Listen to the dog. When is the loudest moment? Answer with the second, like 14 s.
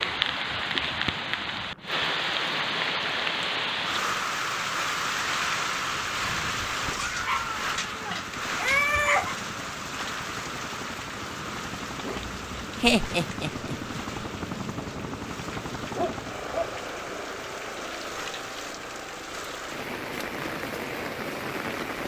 9 s.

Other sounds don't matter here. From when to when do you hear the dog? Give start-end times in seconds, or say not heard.
6.8-9.3, 15.9-16.8.